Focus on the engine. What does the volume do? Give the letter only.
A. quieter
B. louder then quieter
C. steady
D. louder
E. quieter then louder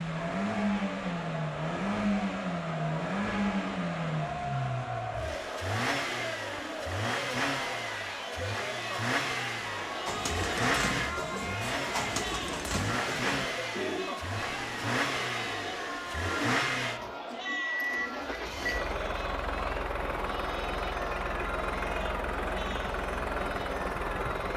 C.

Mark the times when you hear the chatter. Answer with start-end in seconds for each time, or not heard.
0.0-24.5.